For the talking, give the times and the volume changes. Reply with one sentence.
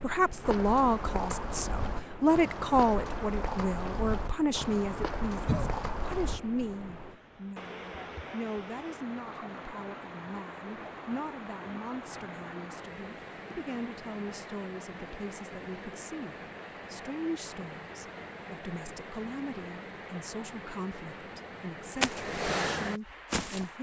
The talking can be heard from 0.0 to 23.7 s, getting quieter.